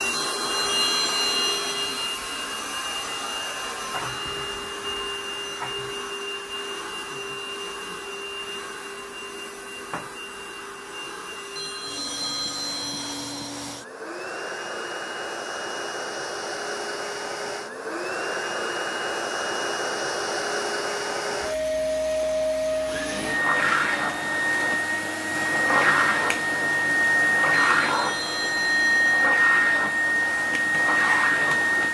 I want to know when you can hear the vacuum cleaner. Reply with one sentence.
You can hear the vacuum cleaner from 0.0 to 31.9 s.